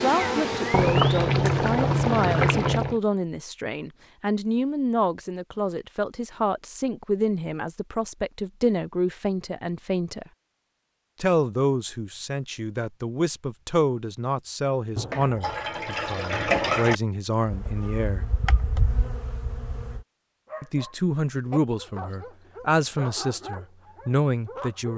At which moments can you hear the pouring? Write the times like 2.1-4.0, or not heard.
0.7-3.0, 14.9-16.9.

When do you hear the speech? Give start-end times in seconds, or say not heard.
0.0-10.2, 11.2-18.3, 20.6-24.9.